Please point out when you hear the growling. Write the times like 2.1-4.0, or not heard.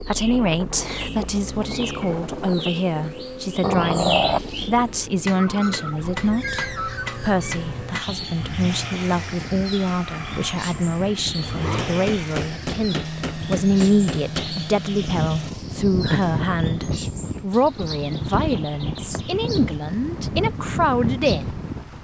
3.6-4.7, 11.3-12.1, 16.1-17.0.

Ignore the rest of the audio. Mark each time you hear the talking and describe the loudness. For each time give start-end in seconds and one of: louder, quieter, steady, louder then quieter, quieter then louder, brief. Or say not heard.
0.1-21.6 steady.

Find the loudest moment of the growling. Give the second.
4 s.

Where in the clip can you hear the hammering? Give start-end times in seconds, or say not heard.
5.2-8.1, 11.8-14.6.